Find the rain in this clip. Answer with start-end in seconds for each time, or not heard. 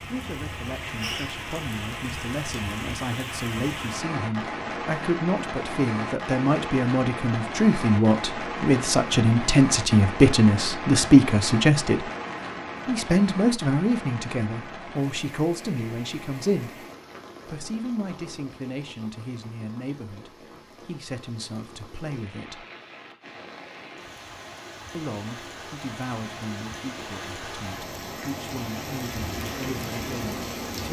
0.0-30.8.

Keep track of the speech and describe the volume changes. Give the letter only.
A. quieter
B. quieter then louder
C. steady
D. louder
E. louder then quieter
E.